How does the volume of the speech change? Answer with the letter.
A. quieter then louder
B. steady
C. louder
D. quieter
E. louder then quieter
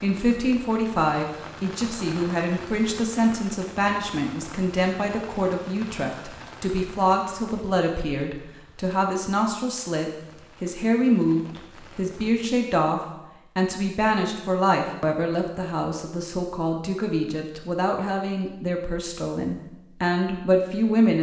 B.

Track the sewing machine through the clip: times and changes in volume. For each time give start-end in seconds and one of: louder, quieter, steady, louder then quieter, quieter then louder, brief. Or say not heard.
not heard.